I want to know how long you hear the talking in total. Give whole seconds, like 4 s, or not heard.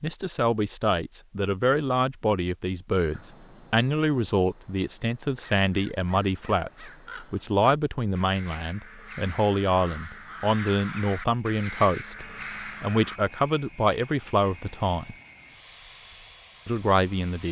16 s.